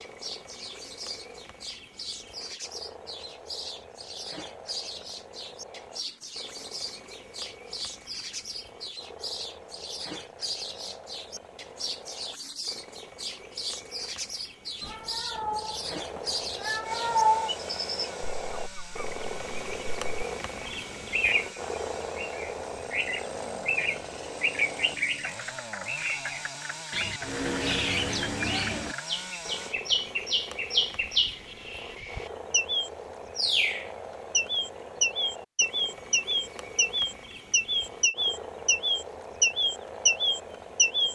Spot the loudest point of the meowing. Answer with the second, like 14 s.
17 s.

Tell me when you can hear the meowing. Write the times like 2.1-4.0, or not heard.
14.8-17.5.